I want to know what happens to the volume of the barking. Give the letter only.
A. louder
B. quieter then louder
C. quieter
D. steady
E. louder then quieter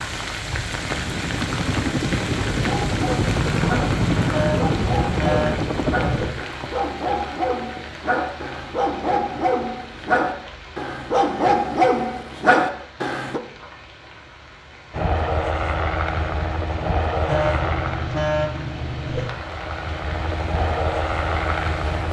A.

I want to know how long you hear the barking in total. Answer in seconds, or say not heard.
11 s.